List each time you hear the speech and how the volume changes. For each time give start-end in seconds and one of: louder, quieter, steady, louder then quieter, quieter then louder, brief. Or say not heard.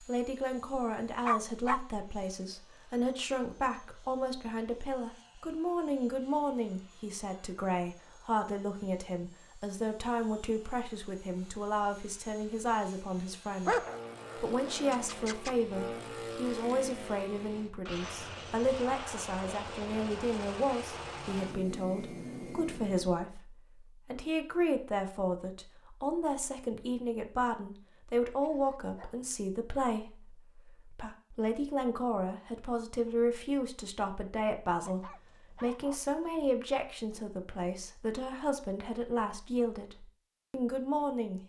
0.0-41.4 steady.